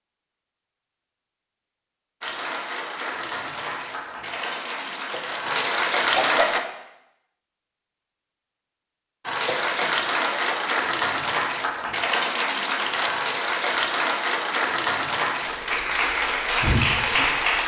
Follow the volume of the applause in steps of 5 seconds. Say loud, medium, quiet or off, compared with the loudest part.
medium, loud, loud, loud.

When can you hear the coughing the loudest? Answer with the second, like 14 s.
6 s.